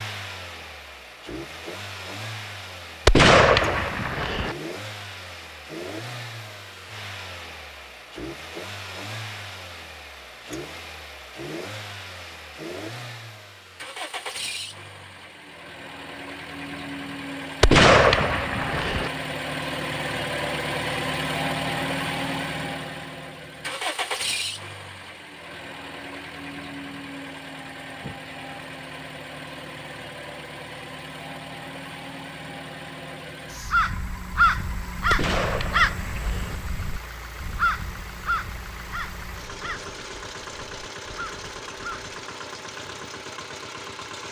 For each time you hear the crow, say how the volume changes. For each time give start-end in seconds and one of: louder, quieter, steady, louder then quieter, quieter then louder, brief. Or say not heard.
33.6-42.1 quieter.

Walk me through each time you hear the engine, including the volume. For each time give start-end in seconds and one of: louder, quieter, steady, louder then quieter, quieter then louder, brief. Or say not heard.
0.0-44.2 louder then quieter.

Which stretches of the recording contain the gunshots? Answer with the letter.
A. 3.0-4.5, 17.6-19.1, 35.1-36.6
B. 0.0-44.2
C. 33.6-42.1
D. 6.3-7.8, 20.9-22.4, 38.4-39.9
A.